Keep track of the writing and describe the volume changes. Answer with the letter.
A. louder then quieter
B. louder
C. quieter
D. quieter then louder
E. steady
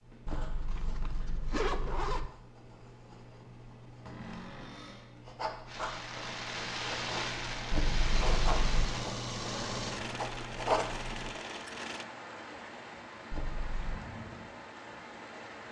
B.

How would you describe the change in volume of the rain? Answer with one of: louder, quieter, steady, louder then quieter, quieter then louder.
quieter.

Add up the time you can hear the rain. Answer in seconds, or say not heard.
10 s.